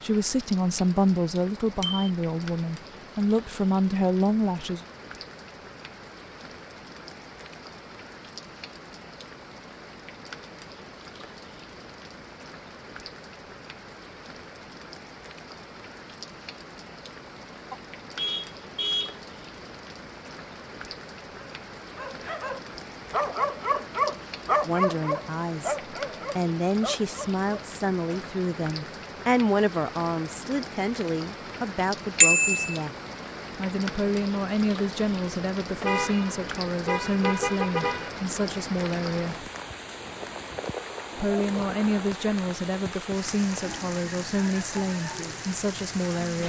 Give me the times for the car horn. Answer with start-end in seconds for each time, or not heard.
17.7-19.1, 35.8-38.1.